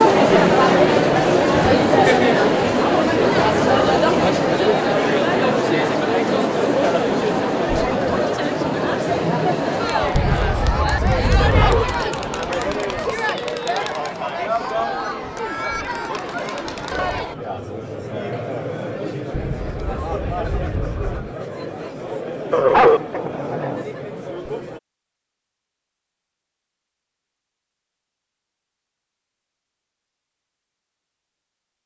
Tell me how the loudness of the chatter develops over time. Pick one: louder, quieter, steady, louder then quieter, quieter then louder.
quieter.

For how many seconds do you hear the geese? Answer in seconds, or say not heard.
4 s.